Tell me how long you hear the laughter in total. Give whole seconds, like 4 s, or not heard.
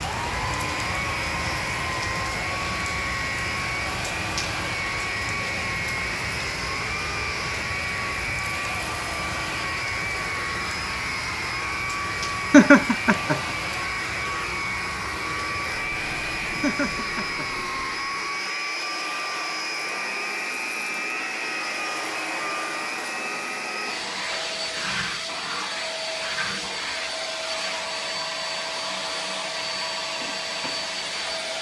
2 s.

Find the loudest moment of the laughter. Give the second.
13 s.